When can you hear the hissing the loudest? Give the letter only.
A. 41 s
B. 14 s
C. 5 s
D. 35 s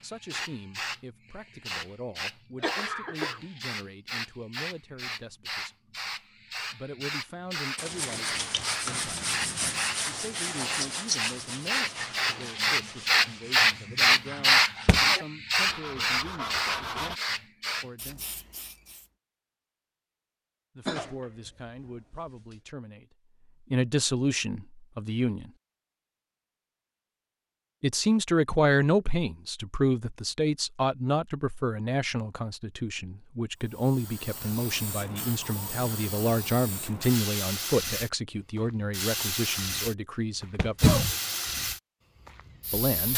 B.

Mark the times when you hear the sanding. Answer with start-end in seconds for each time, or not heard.
7.8-17.2.